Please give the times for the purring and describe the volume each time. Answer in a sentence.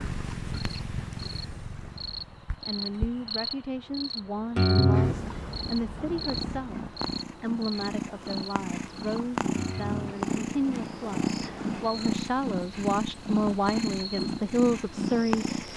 The purring can be heard from 0.0 to 15.7 s, getting quieter then louder.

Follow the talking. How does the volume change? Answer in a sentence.
The loudness of the talking goes up.